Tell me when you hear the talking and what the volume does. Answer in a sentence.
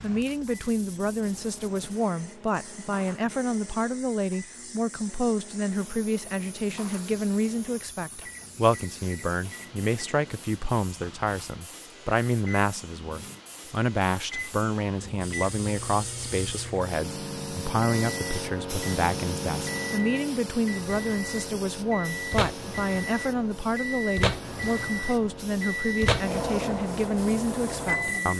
You can hear the talking from 0.0 to 28.3 s, at a steady volume.